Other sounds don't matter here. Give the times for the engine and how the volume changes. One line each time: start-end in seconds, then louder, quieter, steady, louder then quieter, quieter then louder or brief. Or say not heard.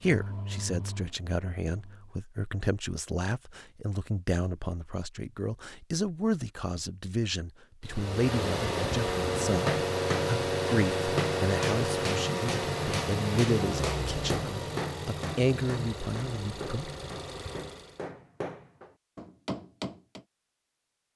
0.0-2.1 brief
7.8-18.0 quieter.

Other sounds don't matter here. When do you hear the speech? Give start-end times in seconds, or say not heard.
0.0-16.9.